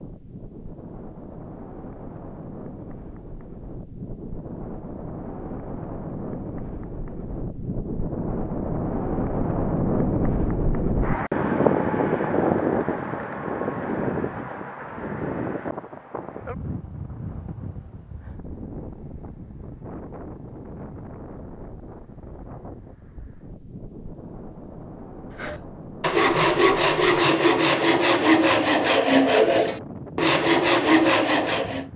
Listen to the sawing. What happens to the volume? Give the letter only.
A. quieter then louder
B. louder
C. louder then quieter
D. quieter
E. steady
E.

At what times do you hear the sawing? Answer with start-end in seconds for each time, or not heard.
25.4-31.9.